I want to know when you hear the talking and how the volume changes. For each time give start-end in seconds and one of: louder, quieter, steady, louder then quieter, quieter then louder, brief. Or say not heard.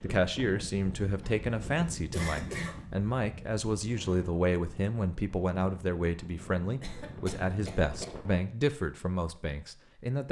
0.0-10.2 steady.